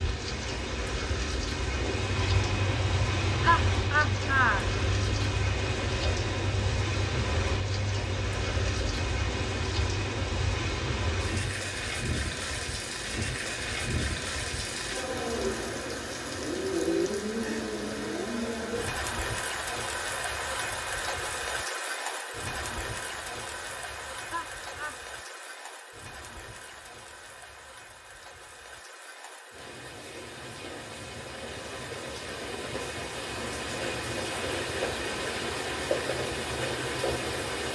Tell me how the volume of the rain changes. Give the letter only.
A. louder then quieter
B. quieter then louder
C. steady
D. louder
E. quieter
B.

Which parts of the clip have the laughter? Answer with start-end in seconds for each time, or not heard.
3.4-4.7, 24.2-24.9.